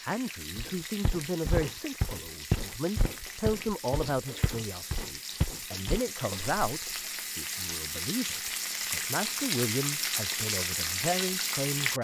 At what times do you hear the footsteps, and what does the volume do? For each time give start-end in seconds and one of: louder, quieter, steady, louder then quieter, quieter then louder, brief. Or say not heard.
0.6-7.1 quieter.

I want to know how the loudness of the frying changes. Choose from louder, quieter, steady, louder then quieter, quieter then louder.
louder.